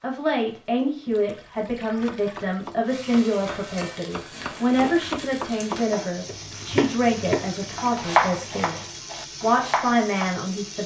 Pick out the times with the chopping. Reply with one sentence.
The chopping can be heard from 1.9 to 10.3 s.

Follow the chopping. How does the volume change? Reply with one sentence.
The volume of the chopping goes up, then down.